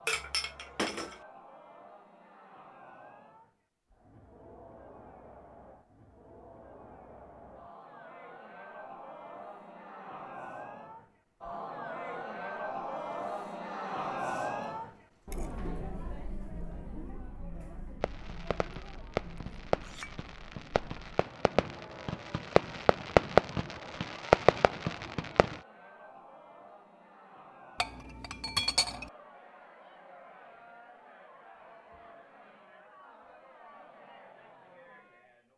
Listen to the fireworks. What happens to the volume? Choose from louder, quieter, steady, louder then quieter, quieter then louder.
quieter then louder.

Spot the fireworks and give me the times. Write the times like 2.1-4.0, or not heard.
18.0-25.6.